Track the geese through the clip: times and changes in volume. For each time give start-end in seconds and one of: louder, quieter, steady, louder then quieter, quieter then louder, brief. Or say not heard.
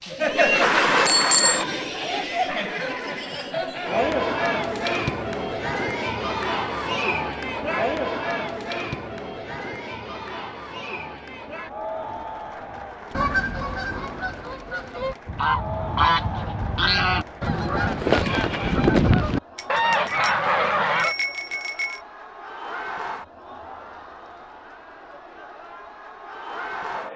13.1-21.1 louder.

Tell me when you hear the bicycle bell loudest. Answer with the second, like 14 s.
1 s.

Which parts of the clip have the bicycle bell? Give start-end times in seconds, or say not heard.
0.6-1.6, 19.6-22.0.